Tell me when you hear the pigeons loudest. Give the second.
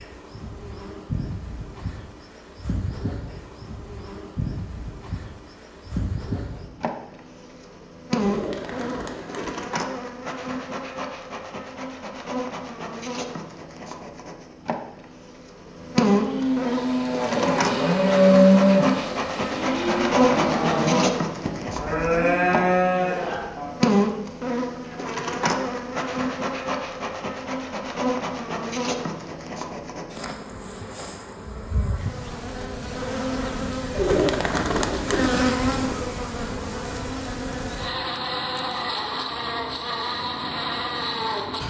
34 s.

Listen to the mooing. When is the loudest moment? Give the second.
18 s.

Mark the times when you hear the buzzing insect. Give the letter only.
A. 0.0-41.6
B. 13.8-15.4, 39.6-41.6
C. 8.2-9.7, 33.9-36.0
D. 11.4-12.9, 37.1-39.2
A.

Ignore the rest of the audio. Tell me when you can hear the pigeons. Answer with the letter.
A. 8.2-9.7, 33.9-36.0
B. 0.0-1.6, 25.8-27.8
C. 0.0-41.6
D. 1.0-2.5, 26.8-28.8
A.